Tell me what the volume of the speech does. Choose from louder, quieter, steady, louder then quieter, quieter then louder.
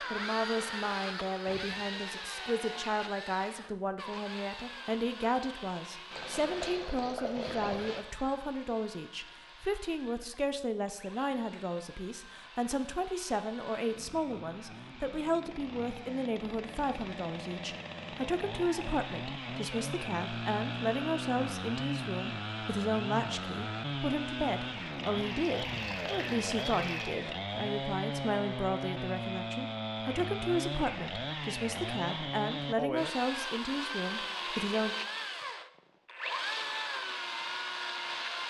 steady.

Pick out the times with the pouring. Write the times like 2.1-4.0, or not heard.
6.1-8.1, 24.8-27.1.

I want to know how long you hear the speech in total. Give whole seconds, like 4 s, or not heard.
35 s.